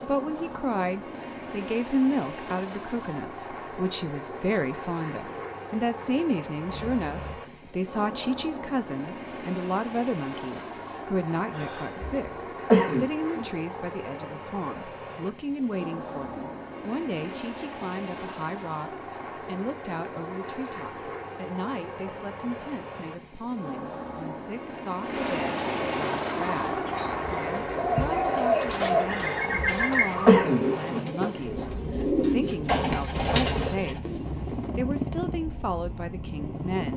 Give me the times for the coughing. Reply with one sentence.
You can hear the coughing from 11.6 to 13.4 s and from 29.1 to 31.1 s.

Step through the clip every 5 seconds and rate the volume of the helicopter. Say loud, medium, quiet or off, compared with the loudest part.
medium, medium, medium, medium, medium, loud, medium, loud.